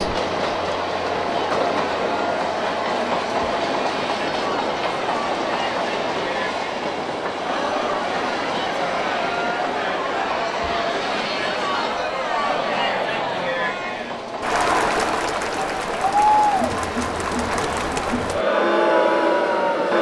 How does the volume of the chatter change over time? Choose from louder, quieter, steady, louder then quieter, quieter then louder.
louder.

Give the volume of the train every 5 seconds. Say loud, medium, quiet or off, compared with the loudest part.
loud, loud, medium, medium.